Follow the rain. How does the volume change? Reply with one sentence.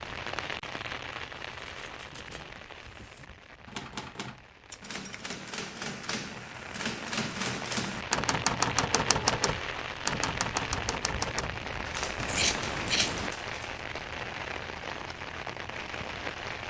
The loudness of the rain goes down, then up.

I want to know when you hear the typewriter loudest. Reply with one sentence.
The volume of the typewriter peaks at 9 seconds.